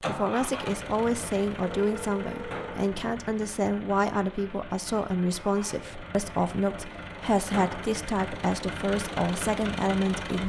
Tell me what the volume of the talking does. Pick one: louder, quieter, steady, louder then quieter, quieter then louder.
steady.